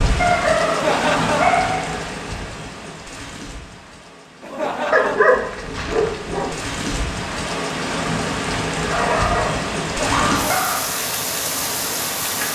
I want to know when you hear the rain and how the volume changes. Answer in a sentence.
The rain can be heard from 0.0 to 12.5 s, getting quieter then louder.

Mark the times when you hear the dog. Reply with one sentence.
You can hear the dog from 0.1 to 2.0 s, from 4.9 to 6.5 s and from 8.8 to 10.9 s.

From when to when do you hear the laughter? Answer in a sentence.
You can hear the laughter from 0.7 to 1.6 s, from 4.4 to 5.3 s and from 9.8 to 10.5 s.